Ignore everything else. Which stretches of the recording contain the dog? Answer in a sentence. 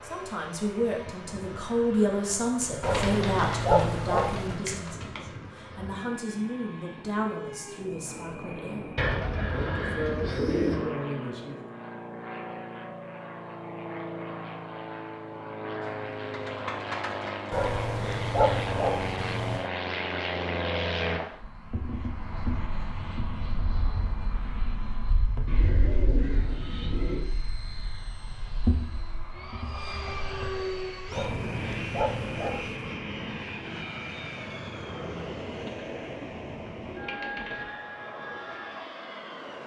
The dog can be heard from 2.8 to 4.6 s, from 17.5 to 19.7 s and from 31.1 to 32.9 s.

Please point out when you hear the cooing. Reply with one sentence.
The cooing can be heard from 2.8 to 5.2 s, from 8.9 to 10.9 s, from 15.8 to 17.6 s, from 25.4 to 27.3 s and from 35.2 to 37.8 s.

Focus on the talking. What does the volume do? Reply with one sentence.
The volume of the talking goes down.